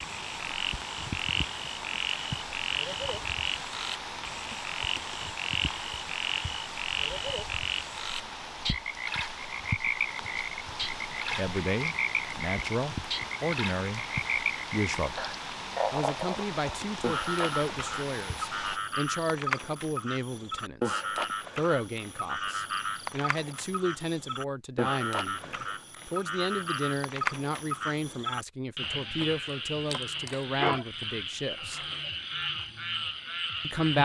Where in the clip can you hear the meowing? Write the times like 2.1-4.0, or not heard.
not heard.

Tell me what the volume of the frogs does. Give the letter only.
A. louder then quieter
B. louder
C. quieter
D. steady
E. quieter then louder
D.